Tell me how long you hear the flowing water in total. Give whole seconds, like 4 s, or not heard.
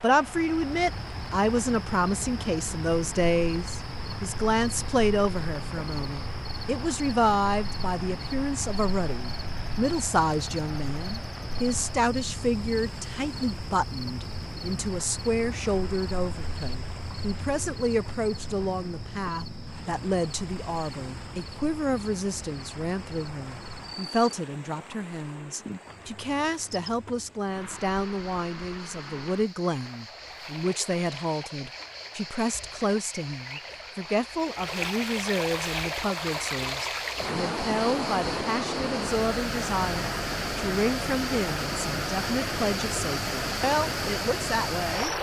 45 s.